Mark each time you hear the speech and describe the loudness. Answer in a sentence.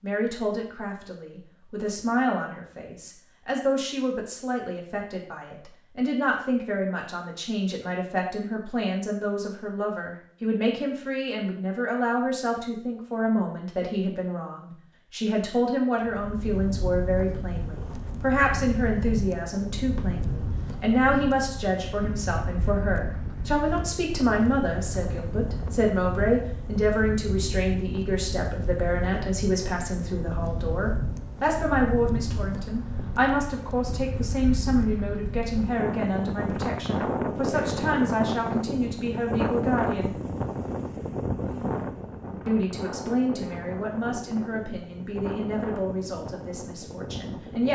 The speech can be heard from 0.0 to 40.1 s, at a steady volume; and from 42.5 to 47.7 s, getting quieter.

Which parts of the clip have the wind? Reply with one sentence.
You can hear the wind from 16.0 to 47.7 s.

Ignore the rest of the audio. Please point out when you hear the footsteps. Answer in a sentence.
You can't hear the footsteps here.